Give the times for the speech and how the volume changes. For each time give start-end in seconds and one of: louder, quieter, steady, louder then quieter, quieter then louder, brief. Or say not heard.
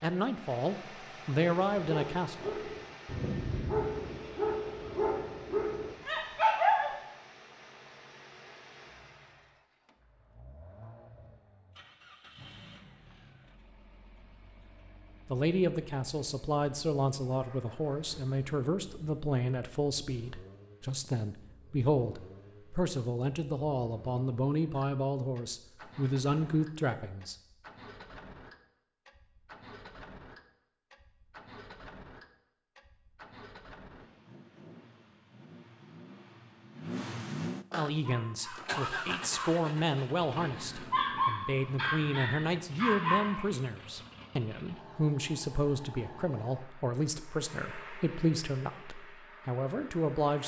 0.0-2.5 brief
15.2-27.4 steady
37.8-50.4 steady.